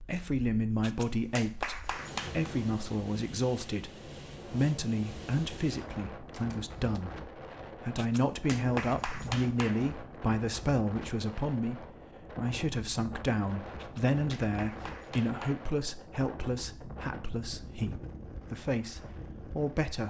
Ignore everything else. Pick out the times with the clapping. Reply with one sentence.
You can hear the clapping from 0.8 to 2.5 s, from 8.0 to 9.8 s and from 13.8 to 15.7 s.